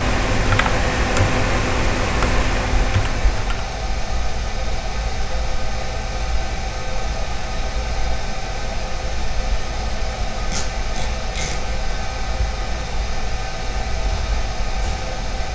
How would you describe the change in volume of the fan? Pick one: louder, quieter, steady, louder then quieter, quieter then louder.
steady.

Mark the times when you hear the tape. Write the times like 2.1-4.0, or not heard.
10.5-11.6.